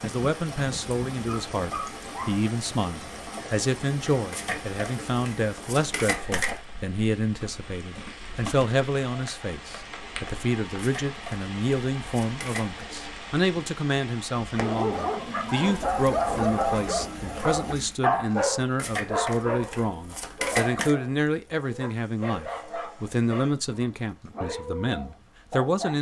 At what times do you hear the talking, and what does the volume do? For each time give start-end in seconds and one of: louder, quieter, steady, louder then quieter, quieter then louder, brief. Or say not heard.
0.0-25.9 steady.